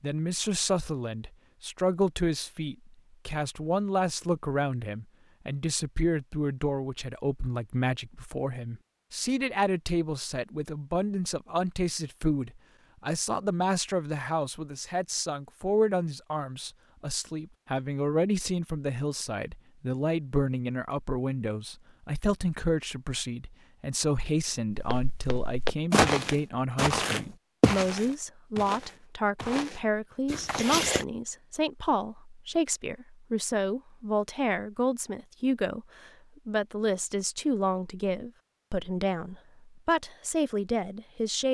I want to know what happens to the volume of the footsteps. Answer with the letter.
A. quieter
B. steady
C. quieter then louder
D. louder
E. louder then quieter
A.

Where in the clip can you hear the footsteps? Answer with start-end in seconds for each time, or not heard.
24.7-31.1.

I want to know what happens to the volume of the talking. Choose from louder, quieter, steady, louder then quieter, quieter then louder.
steady.